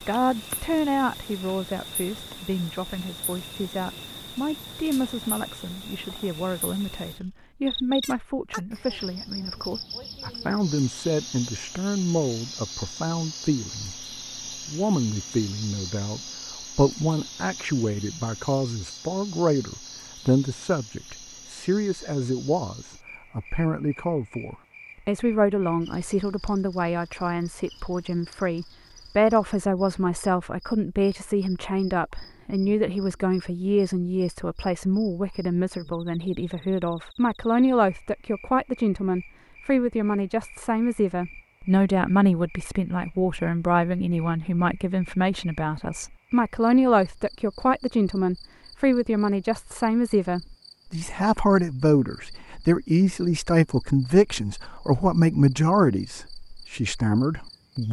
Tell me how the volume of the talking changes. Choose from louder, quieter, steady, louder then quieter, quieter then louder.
louder.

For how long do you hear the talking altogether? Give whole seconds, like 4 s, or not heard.
57 s.